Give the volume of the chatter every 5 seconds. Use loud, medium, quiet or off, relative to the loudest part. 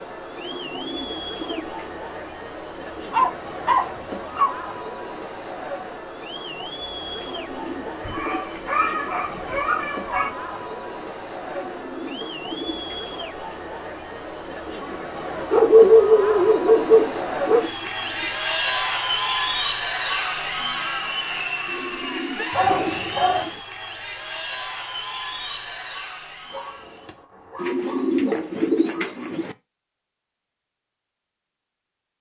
medium, medium, medium, loud, loud, medium, off.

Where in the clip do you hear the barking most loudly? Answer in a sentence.
The loudest moment of the barking is at 16 seconds.